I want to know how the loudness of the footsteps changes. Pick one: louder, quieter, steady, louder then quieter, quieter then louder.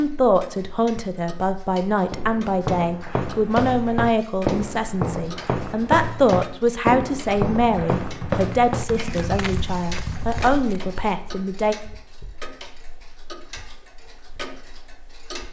quieter.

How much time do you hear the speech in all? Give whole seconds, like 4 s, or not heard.
12 s.